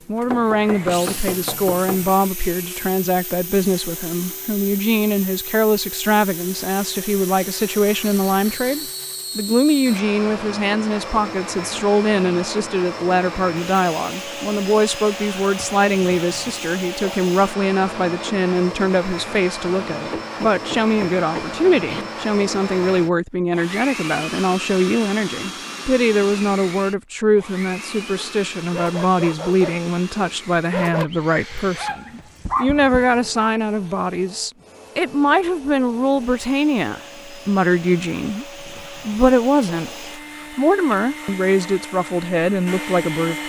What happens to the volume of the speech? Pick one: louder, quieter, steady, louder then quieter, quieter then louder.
steady.